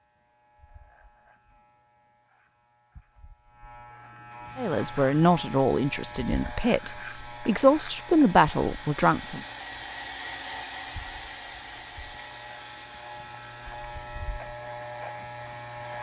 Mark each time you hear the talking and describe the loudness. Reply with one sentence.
The talking can be heard from 4.5 to 9.4 s, getting quieter then louder.